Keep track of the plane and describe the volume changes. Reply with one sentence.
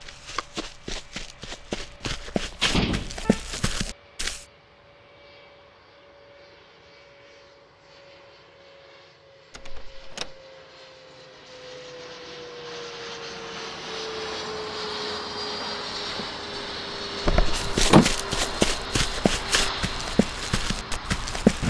The volume of the plane goes up.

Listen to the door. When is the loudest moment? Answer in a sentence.
The loudest moment of the door is at 18 seconds.